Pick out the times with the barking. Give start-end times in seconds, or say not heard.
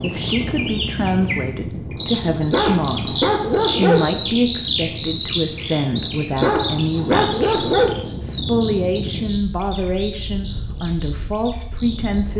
2.5-4.0, 6.4-8.0.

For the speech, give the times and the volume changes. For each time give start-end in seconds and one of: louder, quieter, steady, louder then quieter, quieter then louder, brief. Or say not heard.
0.0-12.3 steady.